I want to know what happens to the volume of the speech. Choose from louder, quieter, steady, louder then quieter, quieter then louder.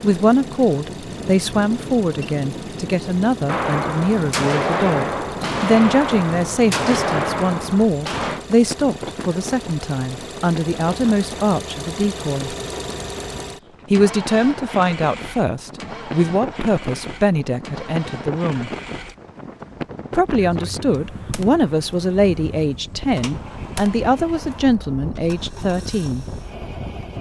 steady.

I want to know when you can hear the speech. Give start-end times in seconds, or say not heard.
0.0-12.6, 13.9-18.7, 20.1-26.2.